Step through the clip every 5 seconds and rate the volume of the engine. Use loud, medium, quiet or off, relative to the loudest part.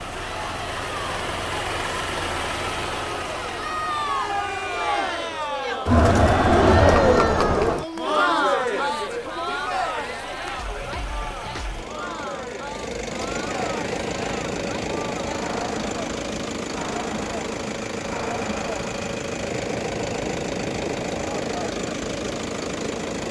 loud, quiet, loud, loud, loud.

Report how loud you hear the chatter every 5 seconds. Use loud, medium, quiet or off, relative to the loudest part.
medium, loud, quiet, quiet, quiet.